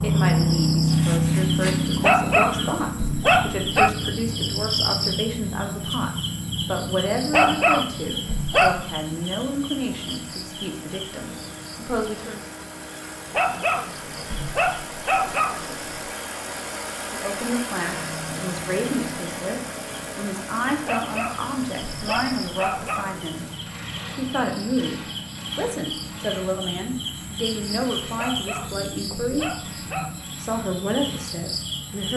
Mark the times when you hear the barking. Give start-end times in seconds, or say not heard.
2.0-3.9, 7.3-8.9, 13.3-15.9, 20.9-23.2, 28.1-30.2.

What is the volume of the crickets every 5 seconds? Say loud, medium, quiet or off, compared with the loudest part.
loud, medium, quiet, quiet, quiet, medium, medium.